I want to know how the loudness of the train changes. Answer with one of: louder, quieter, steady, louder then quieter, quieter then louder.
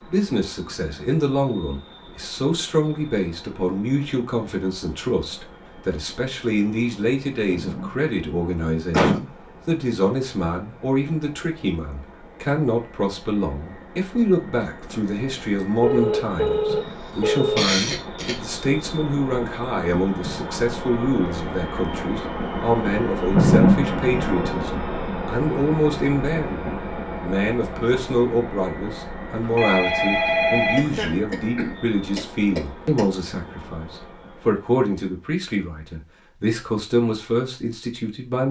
louder then quieter.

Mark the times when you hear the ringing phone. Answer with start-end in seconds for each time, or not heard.
15.8-17.6, 29.4-31.1.